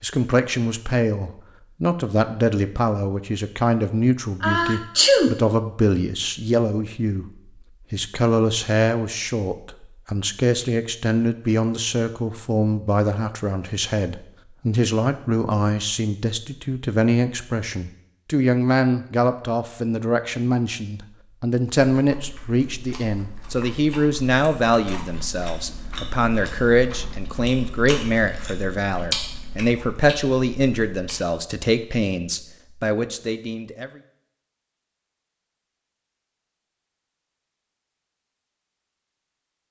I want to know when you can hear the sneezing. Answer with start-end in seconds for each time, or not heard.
4.4-5.3.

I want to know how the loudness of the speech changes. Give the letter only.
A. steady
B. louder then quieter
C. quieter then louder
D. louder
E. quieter
A.